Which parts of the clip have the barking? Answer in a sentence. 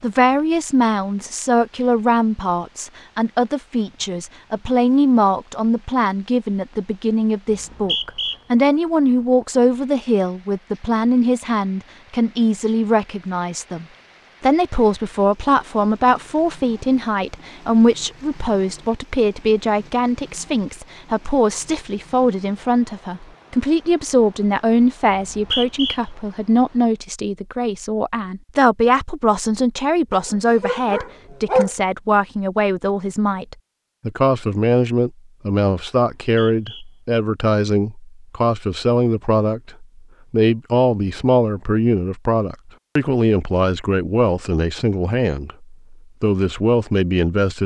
You can hear the barking from 30.1 to 31.7 s.